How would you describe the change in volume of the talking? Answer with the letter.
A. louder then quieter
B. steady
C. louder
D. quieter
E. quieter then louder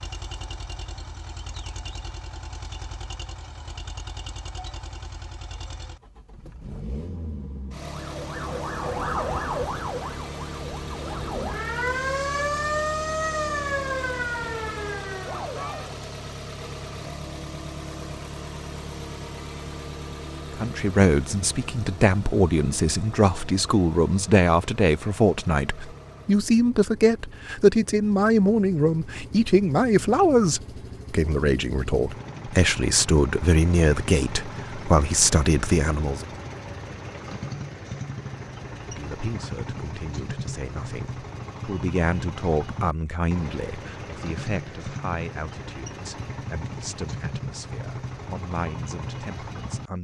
D.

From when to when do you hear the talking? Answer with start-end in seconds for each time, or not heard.
20.6-36.2, 38.9-49.9.